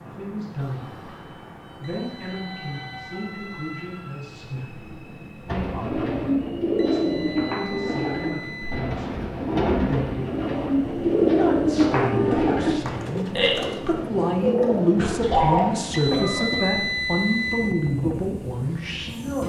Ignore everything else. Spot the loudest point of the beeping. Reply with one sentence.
The volume of the beeping peaks at 17 seconds.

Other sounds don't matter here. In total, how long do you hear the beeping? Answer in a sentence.
The beeping can be heard for 6 seconds in total.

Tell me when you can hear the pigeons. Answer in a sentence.
You can hear the pigeons from 5.5 to 15.7 s.